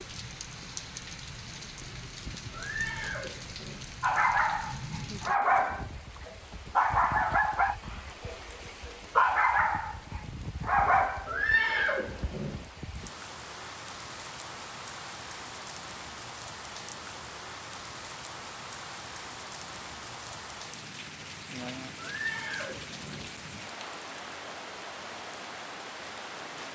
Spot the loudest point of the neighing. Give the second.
12 s.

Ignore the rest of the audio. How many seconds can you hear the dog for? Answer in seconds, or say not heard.
7 s.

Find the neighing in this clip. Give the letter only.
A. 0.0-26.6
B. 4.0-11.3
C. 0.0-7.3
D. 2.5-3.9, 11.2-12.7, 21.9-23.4
D.